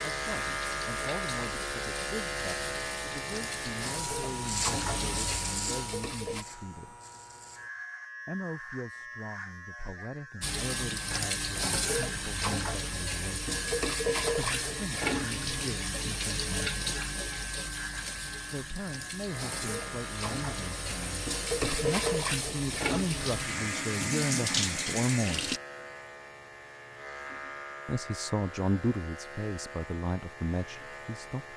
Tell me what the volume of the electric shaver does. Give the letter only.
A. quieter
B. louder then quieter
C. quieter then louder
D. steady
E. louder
A.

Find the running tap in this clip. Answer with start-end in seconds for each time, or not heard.
0.0-6.5, 10.4-25.6.